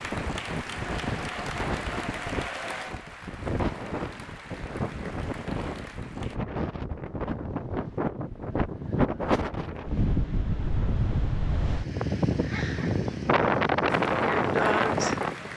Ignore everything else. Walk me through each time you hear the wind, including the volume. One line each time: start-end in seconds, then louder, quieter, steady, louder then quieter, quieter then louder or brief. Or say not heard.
0.0-15.5 louder.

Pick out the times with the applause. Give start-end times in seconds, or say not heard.
0.0-6.4, 13.8-15.5.